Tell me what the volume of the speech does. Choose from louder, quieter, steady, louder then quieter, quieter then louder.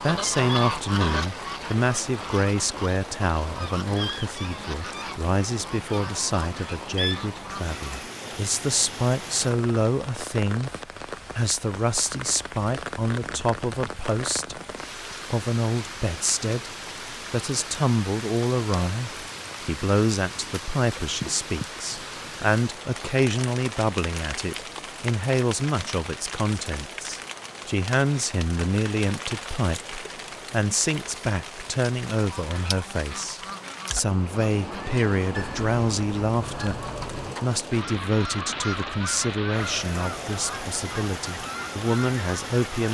steady.